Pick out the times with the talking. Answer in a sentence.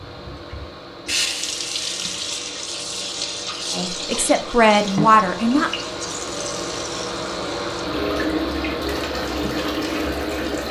You can hear the talking from 3.7 to 5.7 s.